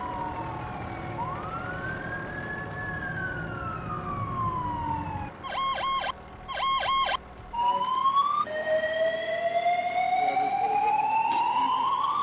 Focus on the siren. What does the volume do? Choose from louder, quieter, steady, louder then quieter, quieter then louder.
louder.